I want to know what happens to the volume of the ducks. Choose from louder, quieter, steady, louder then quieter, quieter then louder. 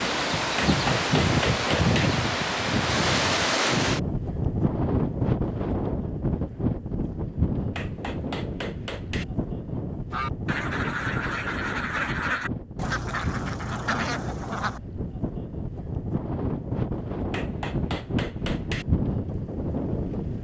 steady.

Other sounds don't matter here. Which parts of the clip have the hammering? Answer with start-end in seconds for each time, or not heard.
0.6-2.1, 7.8-9.2, 17.3-18.9.